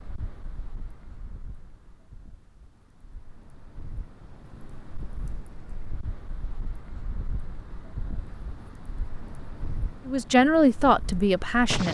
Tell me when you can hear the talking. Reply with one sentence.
You can hear the talking from 10.1 to 11.8 s.